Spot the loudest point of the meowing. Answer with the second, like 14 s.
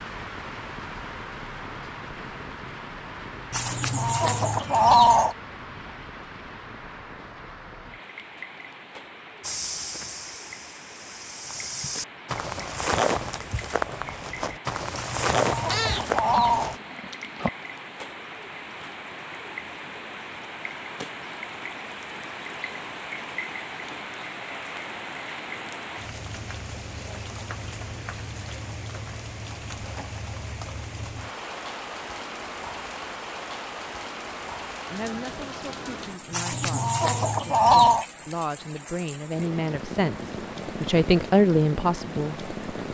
16 s.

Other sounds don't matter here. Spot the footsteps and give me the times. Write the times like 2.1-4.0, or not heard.
9.4-16.8.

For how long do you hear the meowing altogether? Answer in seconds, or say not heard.
2 s.